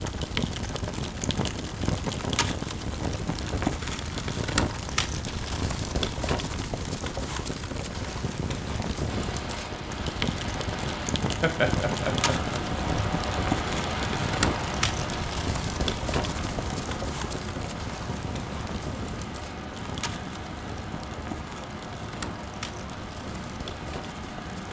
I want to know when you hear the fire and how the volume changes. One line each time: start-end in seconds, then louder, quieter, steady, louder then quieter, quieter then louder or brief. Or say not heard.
0.0-24.6 quieter.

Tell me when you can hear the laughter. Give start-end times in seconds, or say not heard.
11.4-12.8.